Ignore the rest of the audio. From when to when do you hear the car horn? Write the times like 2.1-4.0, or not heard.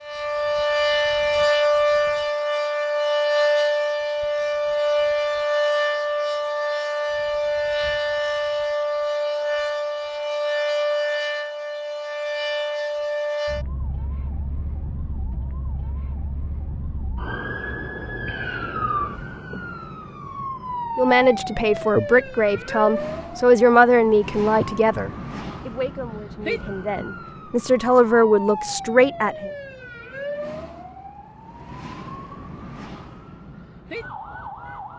not heard.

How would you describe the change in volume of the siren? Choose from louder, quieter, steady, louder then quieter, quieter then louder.
quieter.